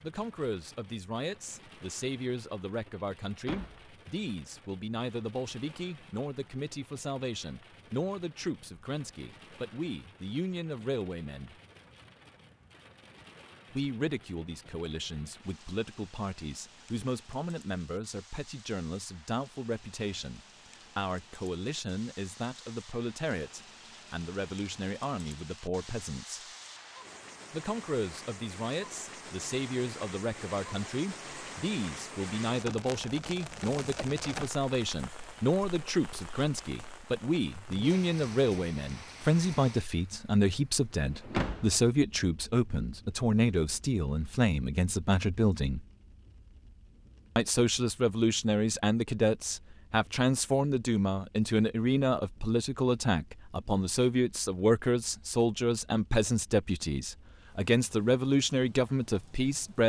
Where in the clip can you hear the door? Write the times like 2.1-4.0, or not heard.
3.5-3.9, 41.3-41.8.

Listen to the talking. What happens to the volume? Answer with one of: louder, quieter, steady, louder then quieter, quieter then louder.
louder.